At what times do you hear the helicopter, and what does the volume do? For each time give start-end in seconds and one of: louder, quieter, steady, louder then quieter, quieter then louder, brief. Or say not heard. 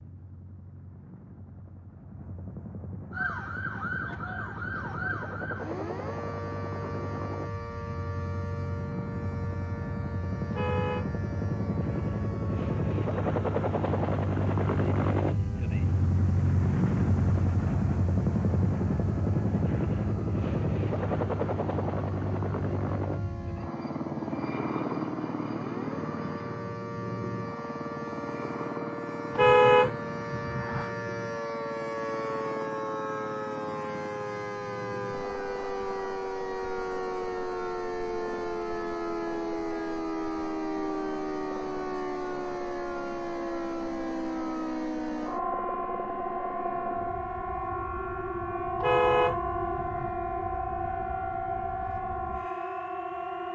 0.0-53.5 louder then quieter.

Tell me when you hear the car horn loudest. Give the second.
30 s.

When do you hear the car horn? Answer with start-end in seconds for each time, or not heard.
10.5-11.1, 29.3-30.9, 48.8-50.1.